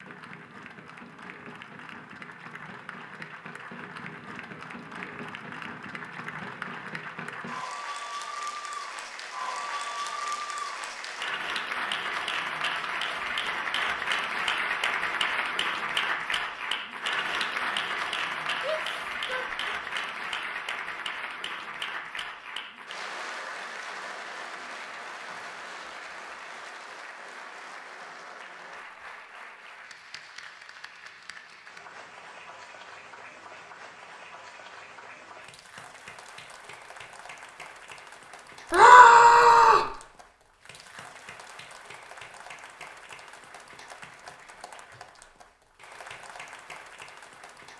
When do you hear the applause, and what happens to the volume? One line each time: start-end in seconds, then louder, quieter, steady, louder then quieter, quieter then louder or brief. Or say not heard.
0.0-47.7 louder then quieter.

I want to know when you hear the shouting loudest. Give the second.
39 s.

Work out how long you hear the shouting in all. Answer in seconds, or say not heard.
2 s.